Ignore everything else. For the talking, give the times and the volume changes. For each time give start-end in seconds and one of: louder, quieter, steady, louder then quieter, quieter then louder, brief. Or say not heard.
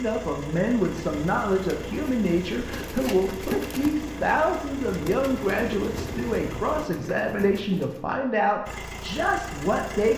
0.0-10.1 steady.